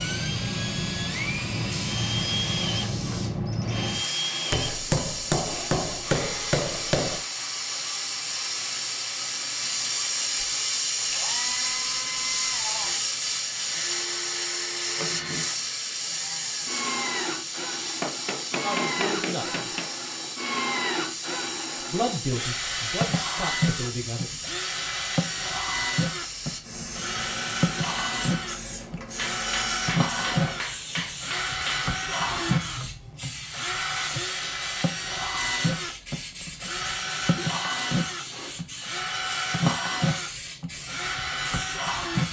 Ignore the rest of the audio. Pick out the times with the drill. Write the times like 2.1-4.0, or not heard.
0.0-42.2.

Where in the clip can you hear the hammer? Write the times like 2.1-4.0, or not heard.
4.5-7.2, 18.0-19.9, 29.1-31.9.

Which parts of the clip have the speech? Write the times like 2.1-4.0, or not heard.
18.6-19.7, 21.9-24.4.